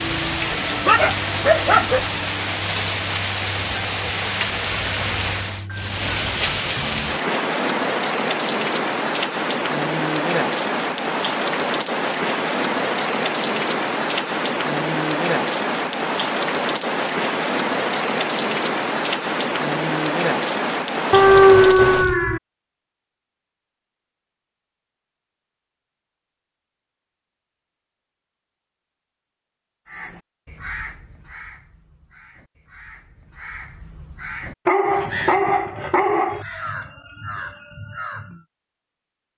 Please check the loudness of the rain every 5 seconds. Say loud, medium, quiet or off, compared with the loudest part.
loud, loud, loud, loud, loud, off, off, off.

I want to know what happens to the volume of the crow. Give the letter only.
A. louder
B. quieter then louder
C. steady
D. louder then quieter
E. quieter
B.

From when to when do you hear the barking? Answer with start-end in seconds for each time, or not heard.
0.5-2.0, 21.1-22.4, 34.6-36.5.